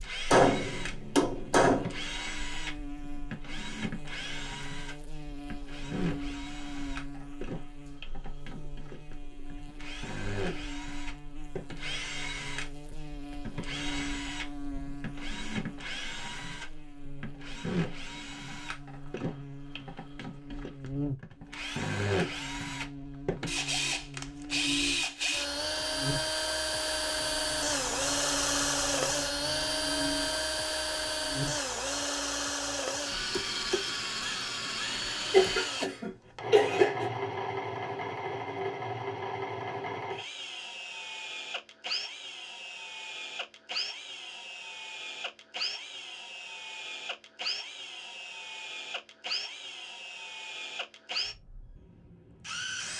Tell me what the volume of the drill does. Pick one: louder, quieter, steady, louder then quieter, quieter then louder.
louder then quieter.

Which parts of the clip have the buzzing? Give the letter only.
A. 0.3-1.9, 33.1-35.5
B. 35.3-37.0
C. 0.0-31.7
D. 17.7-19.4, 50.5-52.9
C.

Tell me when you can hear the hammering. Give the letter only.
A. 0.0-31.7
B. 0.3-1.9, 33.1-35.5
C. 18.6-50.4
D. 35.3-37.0
B.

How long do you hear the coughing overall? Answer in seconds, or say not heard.
2 s.